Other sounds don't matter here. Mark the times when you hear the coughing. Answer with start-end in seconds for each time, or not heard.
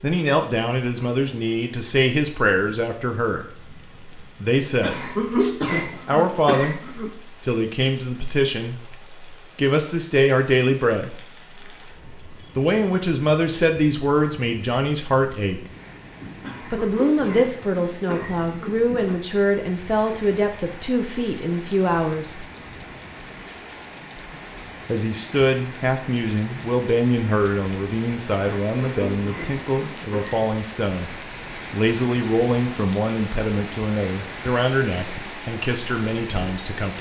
4.8-7.2, 16.4-19.2, 28.7-30.4.